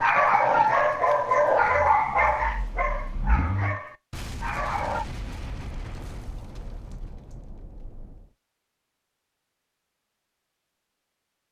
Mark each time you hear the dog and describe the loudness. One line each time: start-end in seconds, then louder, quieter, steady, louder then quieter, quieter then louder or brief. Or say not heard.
0.0-5.0 quieter.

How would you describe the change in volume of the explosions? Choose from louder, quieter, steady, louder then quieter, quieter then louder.
quieter.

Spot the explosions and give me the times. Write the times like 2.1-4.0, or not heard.
4.1-8.3.